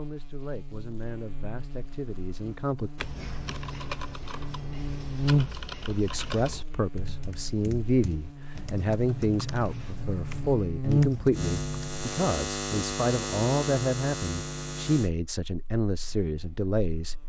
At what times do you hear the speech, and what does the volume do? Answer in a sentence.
You can hear the speech briefly from 0.0 to 2.9 s; and from 5.7 to 17.2 s, at a steady volume.